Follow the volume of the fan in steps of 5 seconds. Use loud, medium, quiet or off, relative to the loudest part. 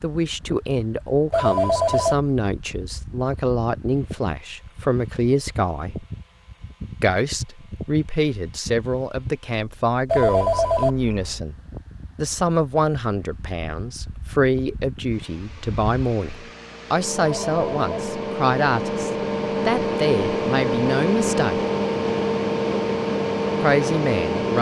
quiet, quiet, quiet, medium, loud.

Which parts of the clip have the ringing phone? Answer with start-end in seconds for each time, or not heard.
1.3-2.1, 10.1-10.9, 17.1-17.9.